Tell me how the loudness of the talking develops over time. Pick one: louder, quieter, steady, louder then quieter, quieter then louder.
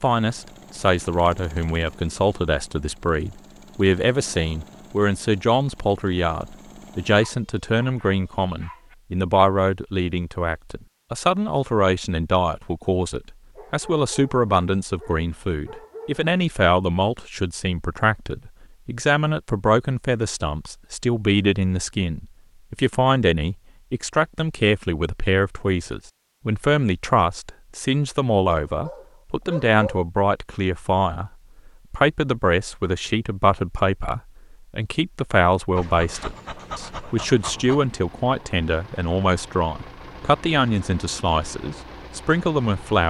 steady.